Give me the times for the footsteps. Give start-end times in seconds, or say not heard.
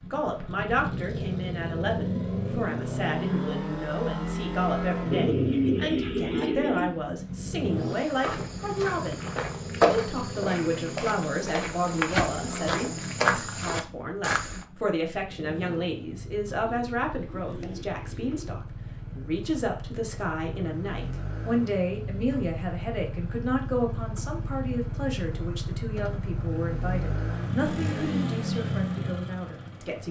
7.8-14.7.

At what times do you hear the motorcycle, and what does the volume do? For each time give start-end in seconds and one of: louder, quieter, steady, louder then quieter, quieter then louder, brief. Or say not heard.
0.0-30.0 quieter then louder.